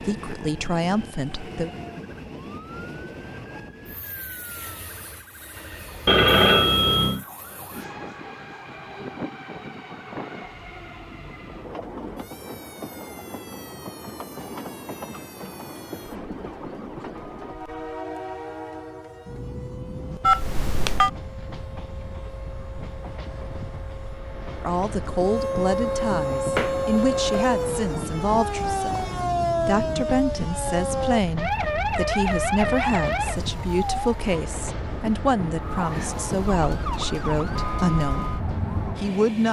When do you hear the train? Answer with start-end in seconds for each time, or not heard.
0.0-39.4.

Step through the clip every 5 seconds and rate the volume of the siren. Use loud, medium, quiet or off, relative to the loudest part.
quiet, quiet, quiet, quiet, quiet, loud, loud, medium.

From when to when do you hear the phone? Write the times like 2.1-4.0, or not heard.
6.0-7.2, 20.2-21.1, 26.5-27.4.